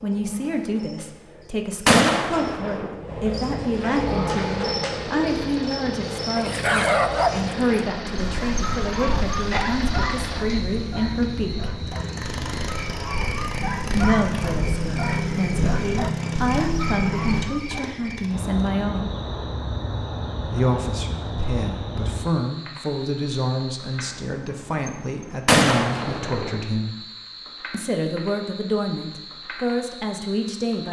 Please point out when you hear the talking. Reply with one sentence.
The talking can be heard from 0.0 to 11.7 s, from 13.9 to 19.1 s, from 20.5 to 26.9 s and from 27.7 to 30.8 s.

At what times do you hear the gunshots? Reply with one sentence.
You can hear the gunshots from 1.9 to 3.0 s and from 25.4 to 26.6 s.